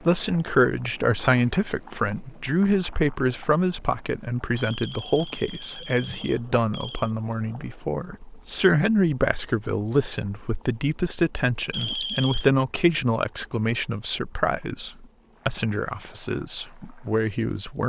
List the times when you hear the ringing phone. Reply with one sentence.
You can hear the ringing phone from 4.5 to 7.1 s and from 11.7 to 12.5 s.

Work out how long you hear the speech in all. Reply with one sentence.
You can hear the speech for 18 seconds altogether.